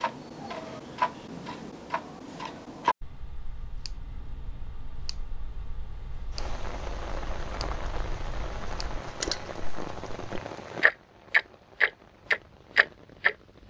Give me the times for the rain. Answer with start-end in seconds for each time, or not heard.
6.3-13.6.